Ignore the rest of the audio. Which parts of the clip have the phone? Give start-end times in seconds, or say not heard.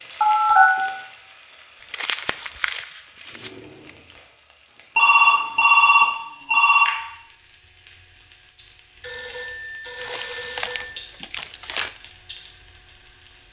0.2-0.8, 5.0-6.9, 9.0-10.9.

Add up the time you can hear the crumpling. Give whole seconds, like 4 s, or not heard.
4 s.